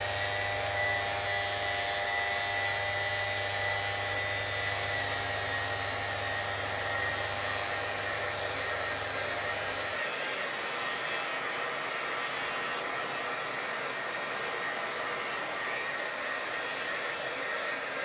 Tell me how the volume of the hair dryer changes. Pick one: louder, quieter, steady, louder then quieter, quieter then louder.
steady.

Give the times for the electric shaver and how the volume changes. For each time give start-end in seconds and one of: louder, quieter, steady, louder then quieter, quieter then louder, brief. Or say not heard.
0.0-17.9 quieter.